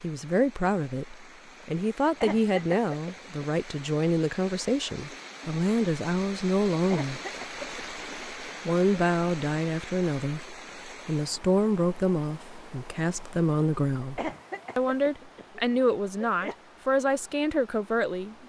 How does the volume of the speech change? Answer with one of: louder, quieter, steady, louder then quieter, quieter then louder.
steady.